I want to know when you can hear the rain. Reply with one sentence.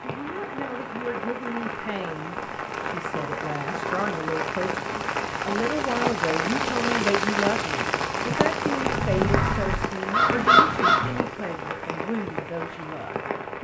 The rain can be heard from 0.0 to 13.6 s.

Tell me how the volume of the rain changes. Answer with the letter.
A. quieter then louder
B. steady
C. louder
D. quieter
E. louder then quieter
E.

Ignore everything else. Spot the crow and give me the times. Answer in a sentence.
You can hear the crow from 8.8 to 11.2 s.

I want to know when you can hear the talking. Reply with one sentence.
The talking can be heard from 0.0 to 13.6 s.